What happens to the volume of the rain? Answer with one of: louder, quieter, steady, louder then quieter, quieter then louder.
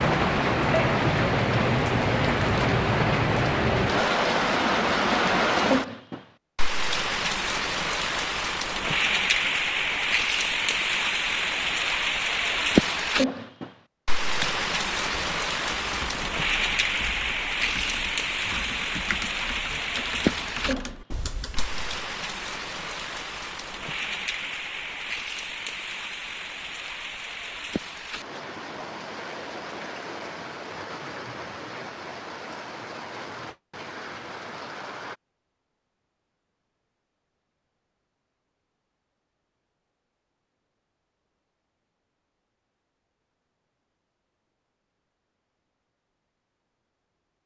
quieter.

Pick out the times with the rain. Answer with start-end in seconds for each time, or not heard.
0.0-35.1.